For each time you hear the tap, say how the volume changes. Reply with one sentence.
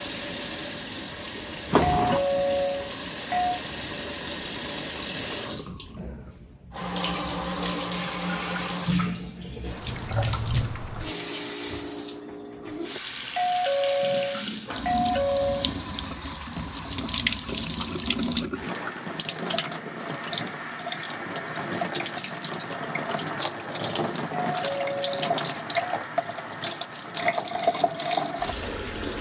You can hear the tap from 0.0 to 29.1 s, at a steady volume.